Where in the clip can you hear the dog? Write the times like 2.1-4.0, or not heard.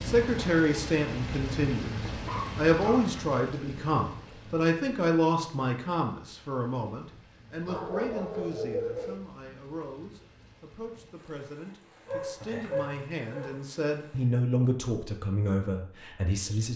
2.2-3.1, 7.7-9.2, 12.1-13.6.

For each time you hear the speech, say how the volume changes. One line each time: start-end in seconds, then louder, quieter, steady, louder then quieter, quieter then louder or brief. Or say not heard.
0.0-16.7 quieter then louder.